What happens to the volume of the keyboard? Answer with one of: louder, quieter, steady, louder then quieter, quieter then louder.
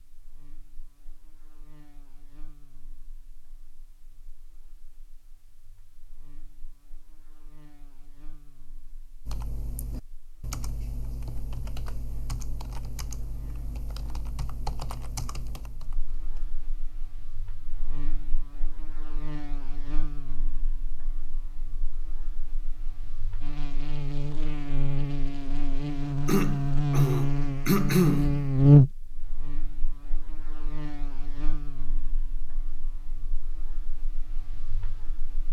steady.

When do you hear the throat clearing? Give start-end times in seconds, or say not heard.
26.2-28.4.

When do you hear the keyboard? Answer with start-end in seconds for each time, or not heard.
9.2-16.6.